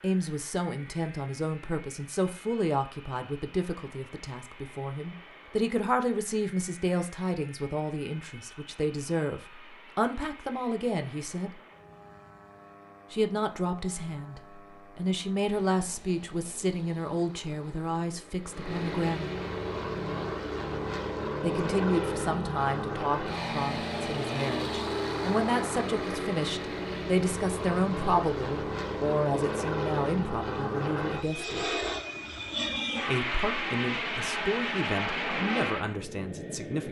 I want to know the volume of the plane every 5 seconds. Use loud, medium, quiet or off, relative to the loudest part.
quiet, quiet, quiet, medium, loud, loud, loud, loud.